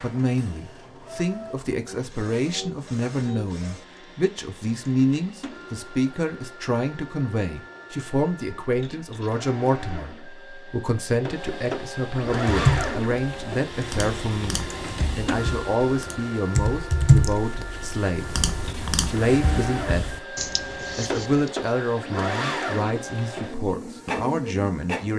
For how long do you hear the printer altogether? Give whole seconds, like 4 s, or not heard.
25 s.